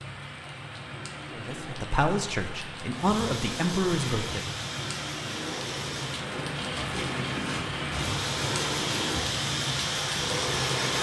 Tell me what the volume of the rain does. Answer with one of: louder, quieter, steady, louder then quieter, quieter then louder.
louder.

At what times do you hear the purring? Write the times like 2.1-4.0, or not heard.
3.0-10.9.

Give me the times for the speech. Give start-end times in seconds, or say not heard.
1.3-4.5.